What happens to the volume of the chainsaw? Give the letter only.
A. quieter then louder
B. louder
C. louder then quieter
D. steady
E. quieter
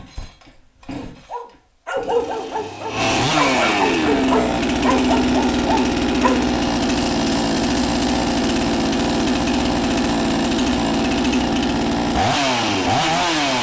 B.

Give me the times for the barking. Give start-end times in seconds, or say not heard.
0.9-6.3.